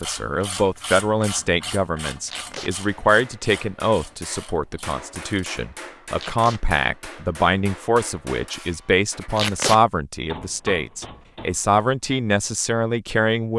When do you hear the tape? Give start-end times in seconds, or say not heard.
2.2-2.7, 6.2-6.6, 9.3-9.8.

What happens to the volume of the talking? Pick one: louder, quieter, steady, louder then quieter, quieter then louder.
steady.